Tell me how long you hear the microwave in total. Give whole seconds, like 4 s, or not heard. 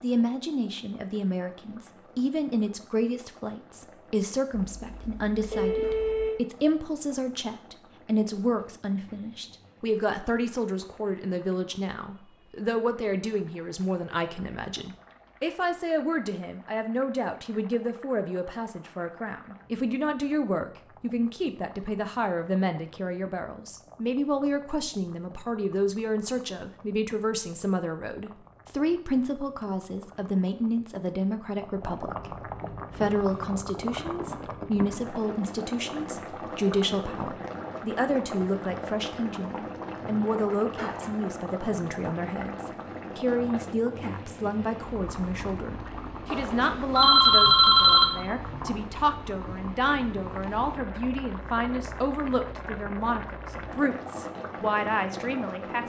not heard.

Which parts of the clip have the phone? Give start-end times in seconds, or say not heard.
4.5-6.4, 46.3-48.0.